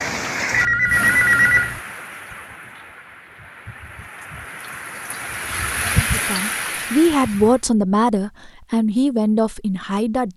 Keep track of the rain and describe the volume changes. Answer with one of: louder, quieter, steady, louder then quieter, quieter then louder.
quieter then louder.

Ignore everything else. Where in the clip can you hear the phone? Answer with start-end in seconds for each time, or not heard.
0.5-1.8.